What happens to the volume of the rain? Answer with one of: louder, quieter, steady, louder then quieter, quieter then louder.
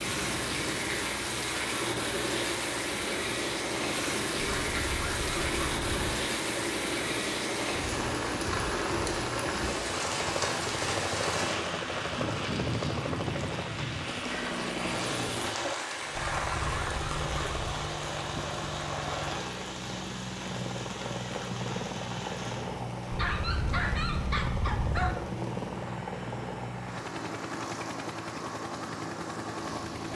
quieter.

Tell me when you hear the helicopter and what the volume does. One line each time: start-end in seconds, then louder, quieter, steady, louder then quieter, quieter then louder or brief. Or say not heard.
0.0-30.1 steady.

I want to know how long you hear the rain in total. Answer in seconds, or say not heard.
30 s.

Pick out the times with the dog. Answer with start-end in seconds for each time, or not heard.
4.4-6.2, 16.1-17.7, 23.1-25.1.